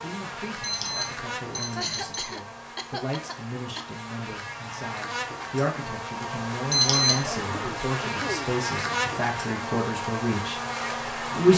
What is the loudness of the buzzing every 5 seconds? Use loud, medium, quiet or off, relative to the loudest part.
medium, loud, loud.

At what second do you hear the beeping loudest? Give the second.
7 s.